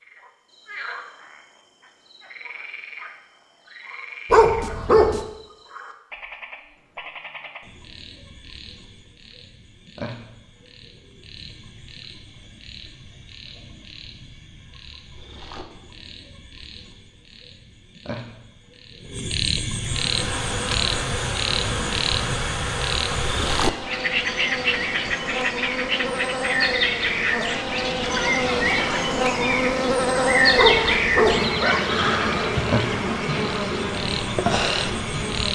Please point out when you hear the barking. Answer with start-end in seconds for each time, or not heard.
4.3-5.2, 30.6-31.5.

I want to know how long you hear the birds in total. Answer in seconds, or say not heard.
not heard.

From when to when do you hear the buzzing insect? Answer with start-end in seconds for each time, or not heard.
19.8-35.5.